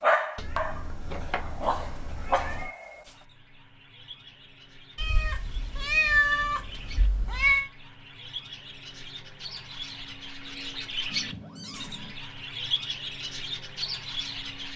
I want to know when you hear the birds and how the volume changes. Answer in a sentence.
You can hear the birds from 2.5 to 14.7 s, getting louder.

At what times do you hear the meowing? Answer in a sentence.
The meowing can be heard from 0.3 to 2.7 s, from 5.0 to 7.7 s and from 11.1 to 12.2 s.